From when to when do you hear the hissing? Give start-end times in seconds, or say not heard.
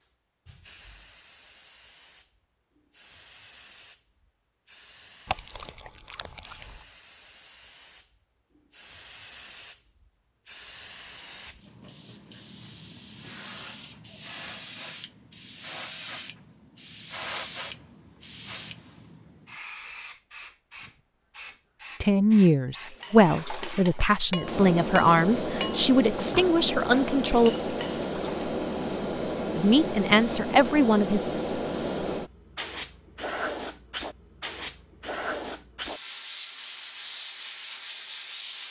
0.0-38.6.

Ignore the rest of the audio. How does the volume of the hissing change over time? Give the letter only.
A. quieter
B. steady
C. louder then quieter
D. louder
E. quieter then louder
D.